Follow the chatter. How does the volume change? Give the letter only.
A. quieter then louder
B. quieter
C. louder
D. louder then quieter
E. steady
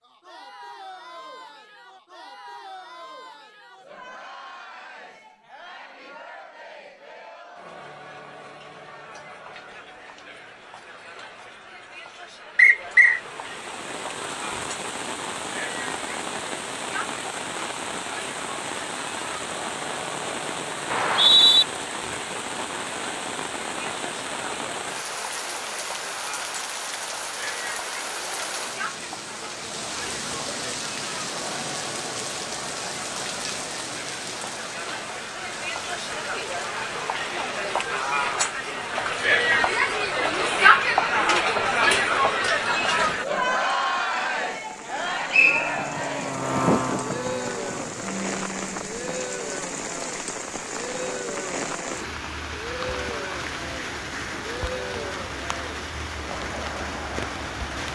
D.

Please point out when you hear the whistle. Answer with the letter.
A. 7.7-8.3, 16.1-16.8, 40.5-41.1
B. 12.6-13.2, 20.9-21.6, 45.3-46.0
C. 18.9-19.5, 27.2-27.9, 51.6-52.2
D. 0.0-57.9
B.